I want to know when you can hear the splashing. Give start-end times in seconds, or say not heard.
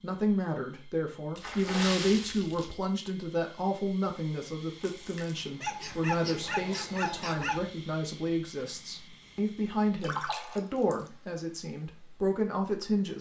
1.4-2.8, 4.8-5.4, 10.0-10.9.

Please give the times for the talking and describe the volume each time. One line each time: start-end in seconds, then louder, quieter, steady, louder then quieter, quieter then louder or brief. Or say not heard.
0.0-13.1 steady.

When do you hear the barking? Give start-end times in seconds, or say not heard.
5.6-7.6.